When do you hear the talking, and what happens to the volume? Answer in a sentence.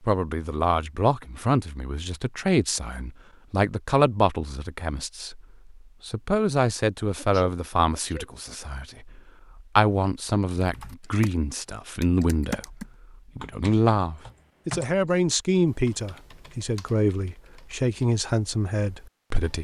The talking can be heard from 0.0 to 19.5 s, at a steady volume.